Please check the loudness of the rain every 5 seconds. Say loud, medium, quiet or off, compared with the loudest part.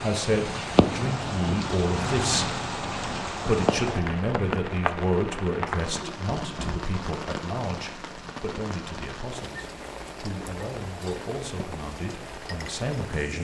loud, medium, medium.